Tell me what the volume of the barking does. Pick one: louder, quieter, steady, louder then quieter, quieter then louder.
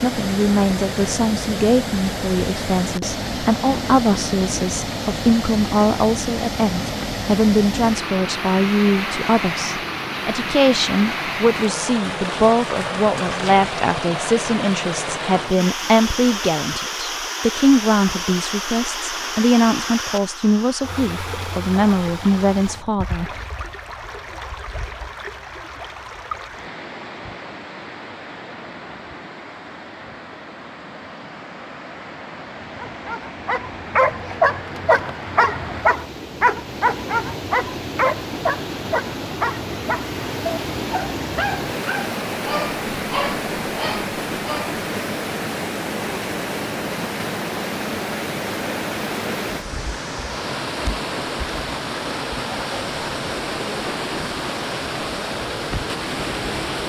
quieter.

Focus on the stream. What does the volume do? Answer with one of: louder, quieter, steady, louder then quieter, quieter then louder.
quieter then louder.